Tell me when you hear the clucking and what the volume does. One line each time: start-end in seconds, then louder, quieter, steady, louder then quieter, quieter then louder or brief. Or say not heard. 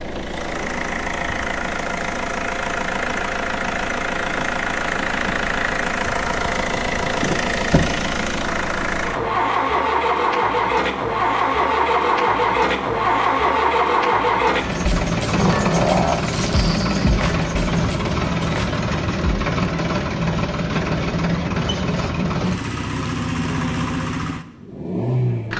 not heard.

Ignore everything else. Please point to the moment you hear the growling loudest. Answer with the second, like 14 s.
16 s.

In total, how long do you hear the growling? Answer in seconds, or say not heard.
2 s.